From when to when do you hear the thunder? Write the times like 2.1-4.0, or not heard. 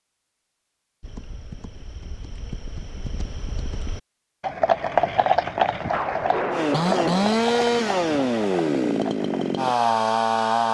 5.9-8.3.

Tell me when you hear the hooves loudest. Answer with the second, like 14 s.
5 s.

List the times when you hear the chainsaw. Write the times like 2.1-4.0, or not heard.
6.5-10.6.